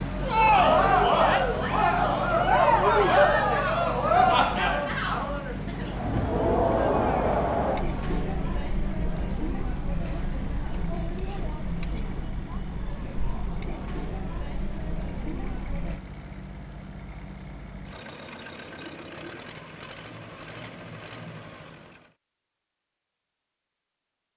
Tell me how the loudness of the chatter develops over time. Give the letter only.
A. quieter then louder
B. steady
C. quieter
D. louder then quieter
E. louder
C.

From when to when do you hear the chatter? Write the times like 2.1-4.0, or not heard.
0.1-16.0.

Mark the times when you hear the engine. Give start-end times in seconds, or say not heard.
0.0-22.1.